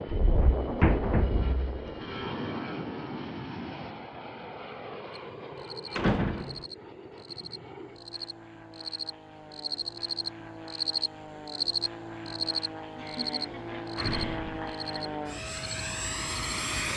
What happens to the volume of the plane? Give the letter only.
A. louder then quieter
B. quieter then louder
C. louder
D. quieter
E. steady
B.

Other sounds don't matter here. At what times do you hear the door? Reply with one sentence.
You can hear the door from 0.1 to 1.6 s, from 6.0 to 6.7 s and from 13.9 to 14.6 s.